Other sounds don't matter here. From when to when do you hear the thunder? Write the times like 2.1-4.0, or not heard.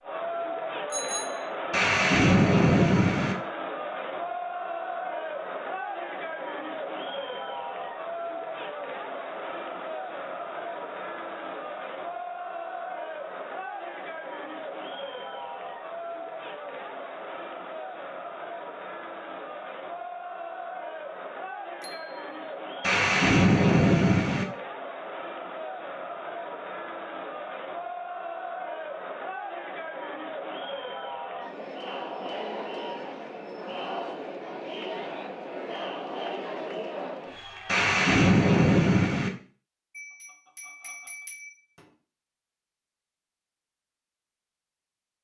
1.7-3.4, 22.8-24.4, 37.6-39.3.